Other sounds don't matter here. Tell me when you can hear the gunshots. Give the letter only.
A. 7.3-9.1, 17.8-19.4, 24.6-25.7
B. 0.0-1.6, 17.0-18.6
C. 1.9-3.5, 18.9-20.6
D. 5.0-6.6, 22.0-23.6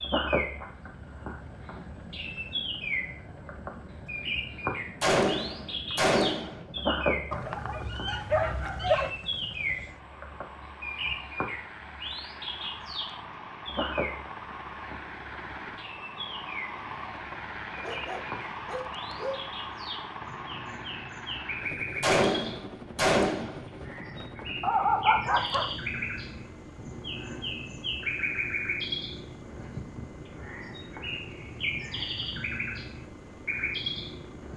D.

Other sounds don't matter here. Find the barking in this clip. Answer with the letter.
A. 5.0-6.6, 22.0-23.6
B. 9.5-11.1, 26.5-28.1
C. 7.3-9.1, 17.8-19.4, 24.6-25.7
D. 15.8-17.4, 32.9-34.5
C.